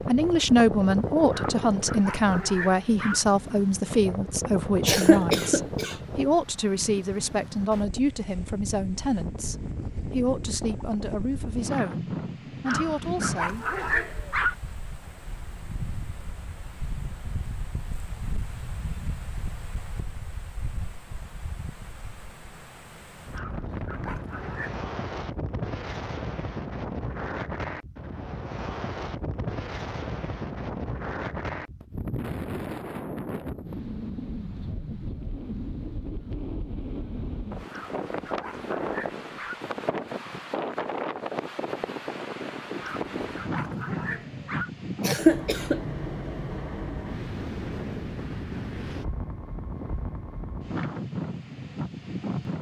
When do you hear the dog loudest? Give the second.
14 s.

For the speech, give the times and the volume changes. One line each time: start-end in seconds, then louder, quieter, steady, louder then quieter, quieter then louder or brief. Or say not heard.
0.1-13.7 quieter.